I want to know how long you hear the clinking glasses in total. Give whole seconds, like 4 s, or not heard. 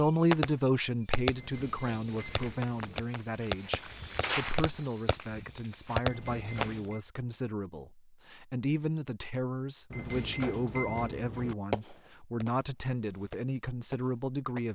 4 s.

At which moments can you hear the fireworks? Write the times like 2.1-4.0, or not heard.
0.0-6.8, 11.7-14.7.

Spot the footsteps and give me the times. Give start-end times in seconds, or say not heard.
1.4-6.9.